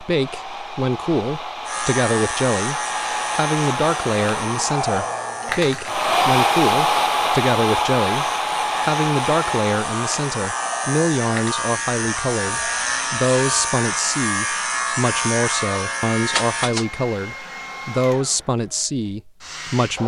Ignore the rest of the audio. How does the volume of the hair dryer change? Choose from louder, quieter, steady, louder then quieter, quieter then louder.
louder then quieter.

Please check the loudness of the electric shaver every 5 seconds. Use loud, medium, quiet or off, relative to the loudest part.
medium, medium, loud, loud.